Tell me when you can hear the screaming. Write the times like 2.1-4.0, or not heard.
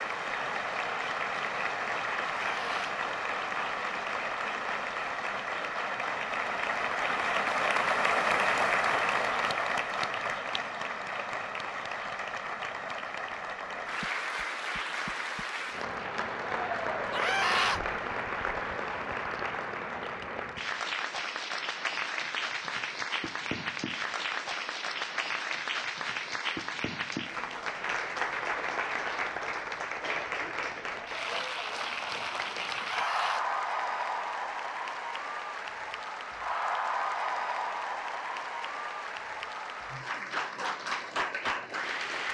2.5-3.0, 17.1-17.8, 32.8-33.5.